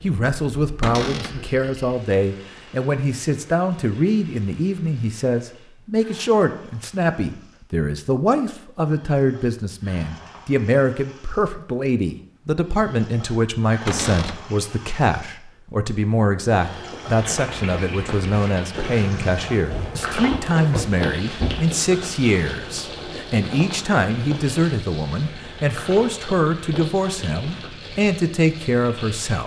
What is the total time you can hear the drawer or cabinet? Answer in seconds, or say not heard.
3 s.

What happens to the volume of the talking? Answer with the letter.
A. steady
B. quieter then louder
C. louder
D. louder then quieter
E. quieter
A.